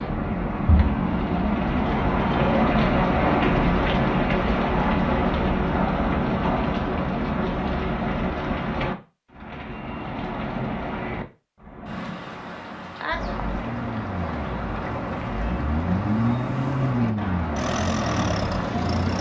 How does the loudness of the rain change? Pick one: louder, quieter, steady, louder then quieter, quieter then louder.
quieter.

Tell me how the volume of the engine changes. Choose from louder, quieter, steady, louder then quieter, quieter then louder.
louder.